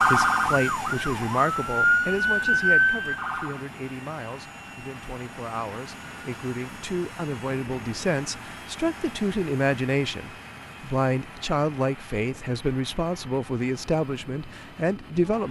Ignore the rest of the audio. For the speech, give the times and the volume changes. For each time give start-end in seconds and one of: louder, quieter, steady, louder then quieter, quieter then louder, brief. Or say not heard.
0.0-15.4 quieter then louder.